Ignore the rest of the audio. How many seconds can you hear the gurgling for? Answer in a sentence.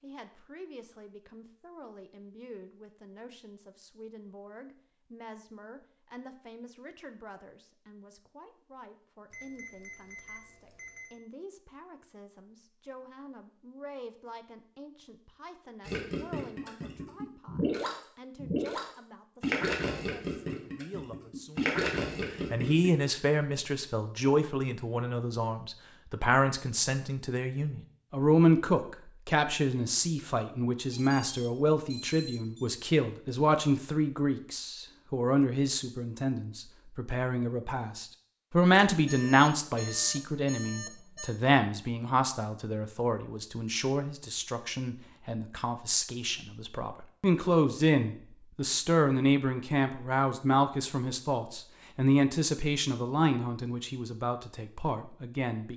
You can hear the gurgling for 7 seconds altogether.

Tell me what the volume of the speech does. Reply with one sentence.
The volume of the speech goes up.